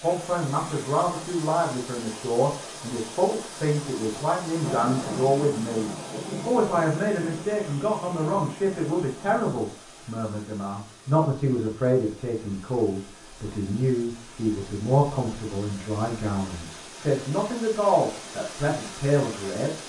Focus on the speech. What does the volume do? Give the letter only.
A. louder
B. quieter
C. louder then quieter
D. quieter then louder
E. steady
E.